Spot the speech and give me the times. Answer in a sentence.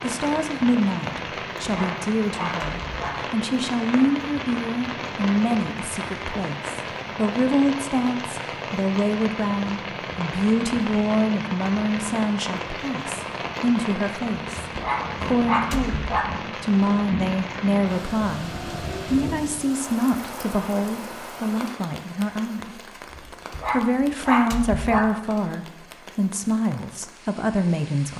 The speech can be heard from 0.0 to 18.5 s, from 19.1 to 22.8 s and from 23.7 to 28.1 s.